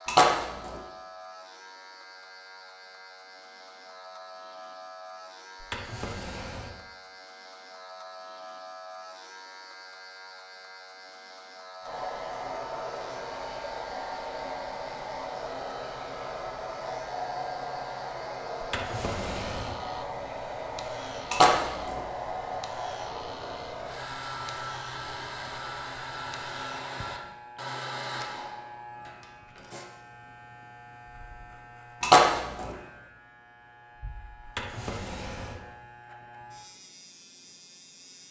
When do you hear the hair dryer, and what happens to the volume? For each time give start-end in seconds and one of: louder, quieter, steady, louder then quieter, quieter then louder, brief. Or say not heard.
11.8-29.9 steady.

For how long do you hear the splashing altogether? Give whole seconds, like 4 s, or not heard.
2 s.